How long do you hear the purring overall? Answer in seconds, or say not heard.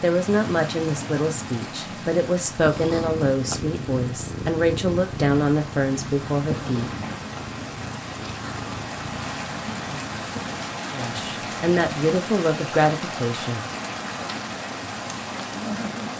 8 s.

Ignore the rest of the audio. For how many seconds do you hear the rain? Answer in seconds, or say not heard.
16 s.